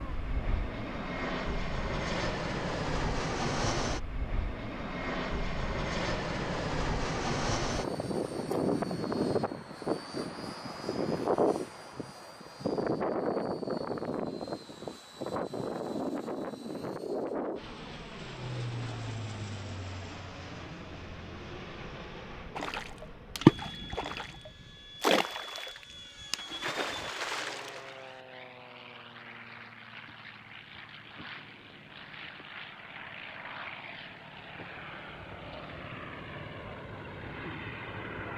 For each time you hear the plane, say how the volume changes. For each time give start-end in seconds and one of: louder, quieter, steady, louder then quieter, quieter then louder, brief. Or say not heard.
0.0-38.3 quieter.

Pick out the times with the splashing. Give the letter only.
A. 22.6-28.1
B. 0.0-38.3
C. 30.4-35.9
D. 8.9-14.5
A.